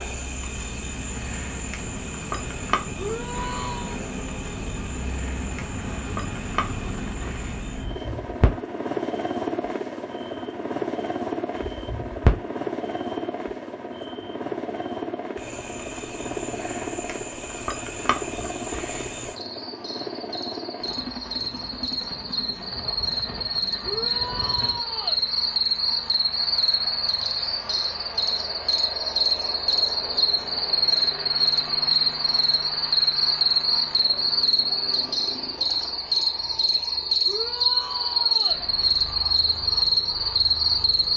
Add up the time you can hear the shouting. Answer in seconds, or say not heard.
4 s.